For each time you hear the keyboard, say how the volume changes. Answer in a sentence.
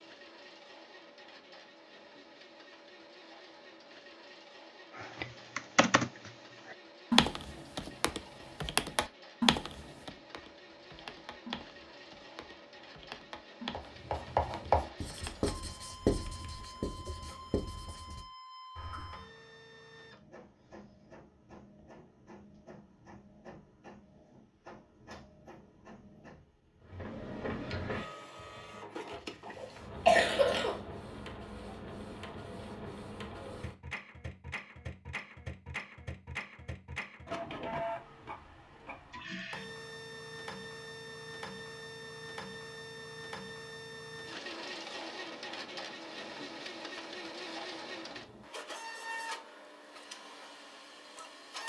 The keyboard can be heard from 5.0 to 16.7 s, getting quieter.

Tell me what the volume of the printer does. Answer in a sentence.
The loudness of the printer goes up.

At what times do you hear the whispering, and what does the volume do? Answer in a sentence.
You can't hear the whispering here.